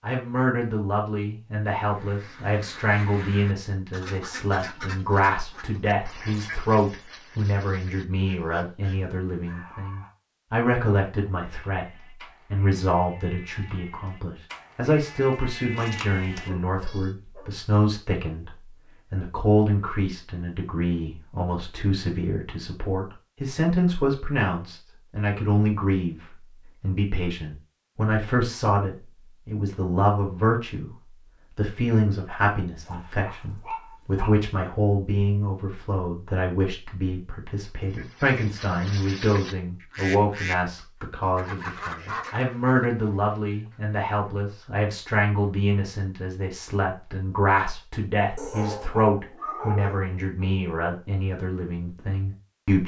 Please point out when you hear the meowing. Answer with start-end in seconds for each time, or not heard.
not heard.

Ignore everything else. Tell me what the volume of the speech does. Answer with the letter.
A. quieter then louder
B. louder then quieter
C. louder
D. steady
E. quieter
D.